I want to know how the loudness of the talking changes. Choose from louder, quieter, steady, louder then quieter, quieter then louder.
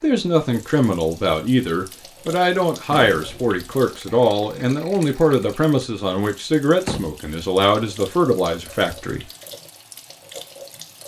steady.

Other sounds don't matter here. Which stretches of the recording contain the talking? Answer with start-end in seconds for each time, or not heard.
0.0-9.2.